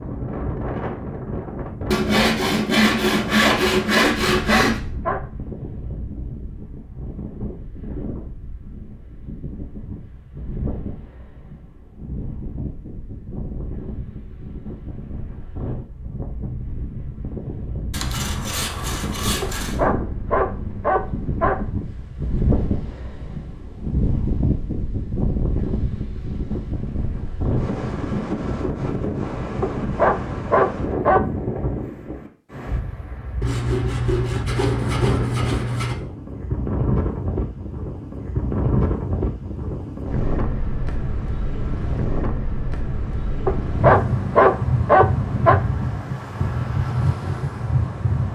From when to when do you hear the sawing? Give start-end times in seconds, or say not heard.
1.9-4.8, 17.9-19.8, 33.4-36.0.